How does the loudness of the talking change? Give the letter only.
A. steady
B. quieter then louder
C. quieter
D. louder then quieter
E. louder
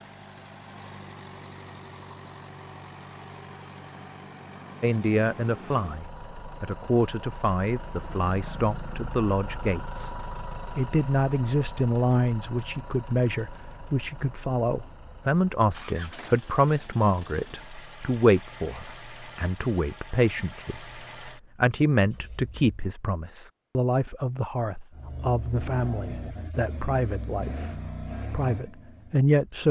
A.